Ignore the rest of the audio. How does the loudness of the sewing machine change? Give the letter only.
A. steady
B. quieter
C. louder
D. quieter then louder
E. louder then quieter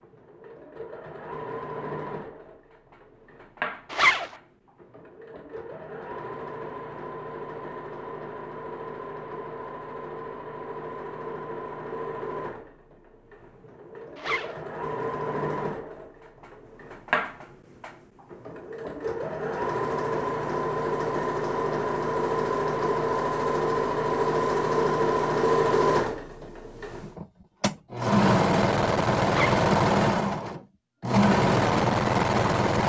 C.